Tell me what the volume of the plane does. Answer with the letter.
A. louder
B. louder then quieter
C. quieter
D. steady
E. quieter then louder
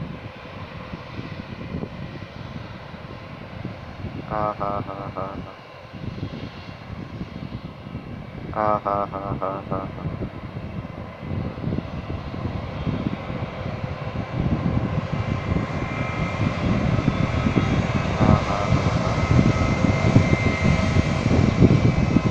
A.